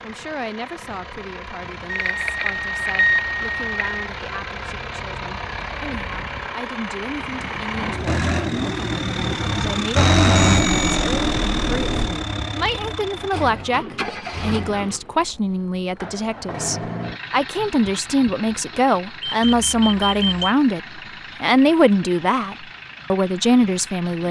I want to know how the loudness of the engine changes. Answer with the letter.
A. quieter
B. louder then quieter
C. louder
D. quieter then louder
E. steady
B.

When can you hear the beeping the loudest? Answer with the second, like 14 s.
3 s.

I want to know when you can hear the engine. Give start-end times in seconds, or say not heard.
0.0-24.2.